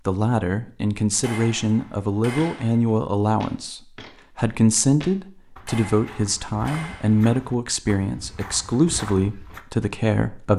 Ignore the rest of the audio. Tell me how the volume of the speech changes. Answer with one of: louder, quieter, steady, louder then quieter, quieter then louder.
steady.